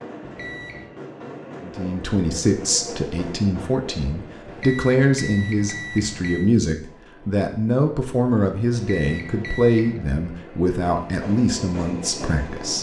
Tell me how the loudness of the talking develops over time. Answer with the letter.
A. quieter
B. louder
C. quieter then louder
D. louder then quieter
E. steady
E.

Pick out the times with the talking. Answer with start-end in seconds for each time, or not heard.
1.6-12.7.